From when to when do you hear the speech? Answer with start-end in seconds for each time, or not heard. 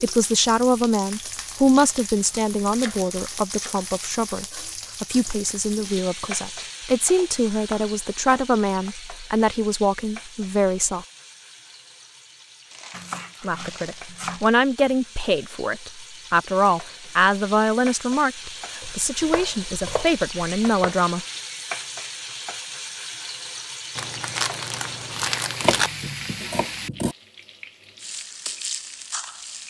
0.0-11.1, 13.4-21.2.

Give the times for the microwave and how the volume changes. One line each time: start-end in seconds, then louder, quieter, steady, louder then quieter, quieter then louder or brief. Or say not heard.
not heard.